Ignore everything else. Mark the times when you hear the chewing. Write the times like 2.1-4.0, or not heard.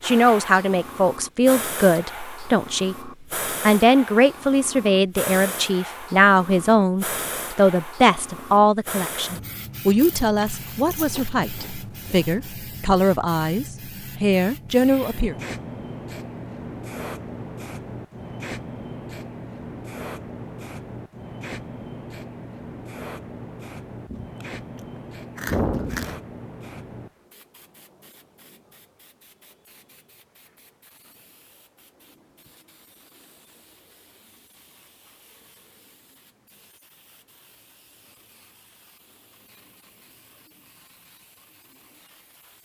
10.0-12.3, 24.1-26.2.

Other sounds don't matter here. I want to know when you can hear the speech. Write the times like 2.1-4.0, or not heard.
0.0-15.3.